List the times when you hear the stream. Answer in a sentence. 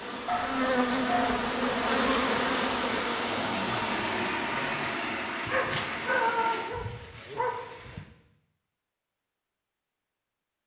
The stream can be heard from 0.0 to 6.7 s.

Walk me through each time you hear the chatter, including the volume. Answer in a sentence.
The chatter can't be heard in this clip.